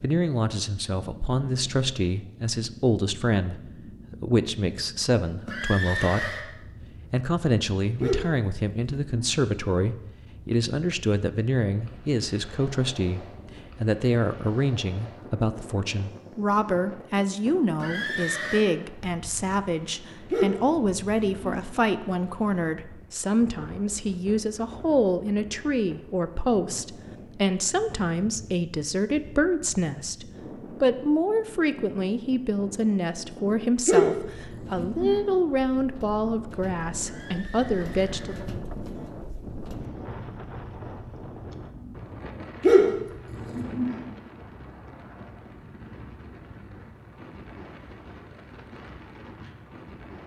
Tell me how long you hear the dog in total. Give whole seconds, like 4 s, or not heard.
6 s.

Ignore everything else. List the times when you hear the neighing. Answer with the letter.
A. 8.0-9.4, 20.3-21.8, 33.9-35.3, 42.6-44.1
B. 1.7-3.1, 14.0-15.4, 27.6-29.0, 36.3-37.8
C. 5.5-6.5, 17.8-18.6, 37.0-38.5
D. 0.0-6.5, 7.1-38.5
C.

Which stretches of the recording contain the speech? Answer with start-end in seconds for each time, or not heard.
0.0-6.5, 7.1-38.5.